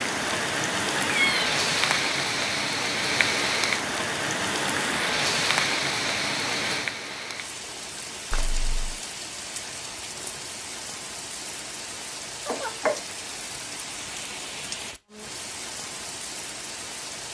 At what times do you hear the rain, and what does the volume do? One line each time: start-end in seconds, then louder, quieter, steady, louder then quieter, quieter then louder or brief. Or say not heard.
0.0-17.2 quieter.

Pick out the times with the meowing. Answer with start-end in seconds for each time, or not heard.
1.1-1.5, 8.3-8.9, 12.4-13.0.